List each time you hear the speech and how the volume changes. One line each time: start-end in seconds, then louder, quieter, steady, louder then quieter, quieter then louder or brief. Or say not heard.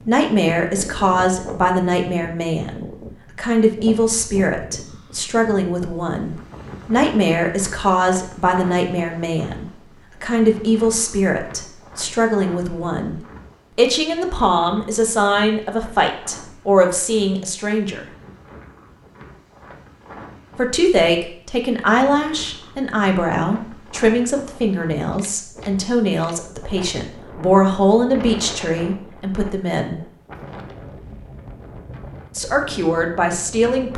0.1-18.1 steady
20.6-30.0 steady
32.4-33.9 brief.